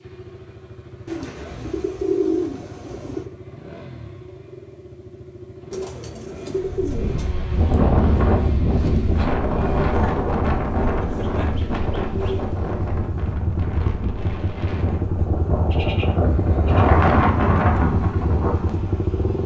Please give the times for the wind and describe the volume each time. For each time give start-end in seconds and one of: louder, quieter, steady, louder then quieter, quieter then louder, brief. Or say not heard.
6.7-19.4 quieter then louder.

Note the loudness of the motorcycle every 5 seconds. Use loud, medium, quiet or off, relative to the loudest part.
medium, medium, loud, loud.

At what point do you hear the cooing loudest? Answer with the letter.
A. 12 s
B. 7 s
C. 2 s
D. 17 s
C.